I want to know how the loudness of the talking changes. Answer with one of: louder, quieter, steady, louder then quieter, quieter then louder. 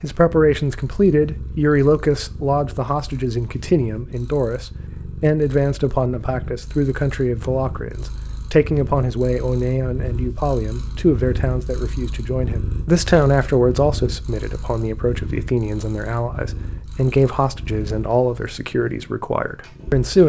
steady.